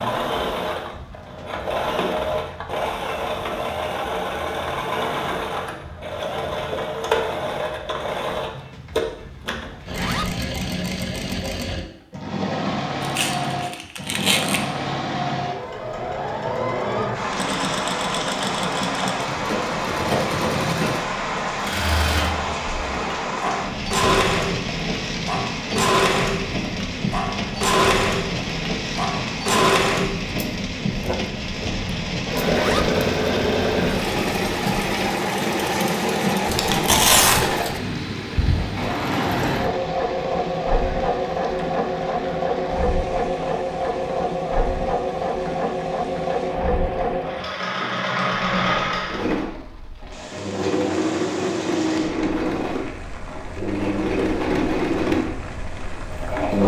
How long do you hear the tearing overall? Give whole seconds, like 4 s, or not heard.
3 s.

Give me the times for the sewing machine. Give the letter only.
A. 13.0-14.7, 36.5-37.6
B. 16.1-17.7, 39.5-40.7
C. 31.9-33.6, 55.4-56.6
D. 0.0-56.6
D.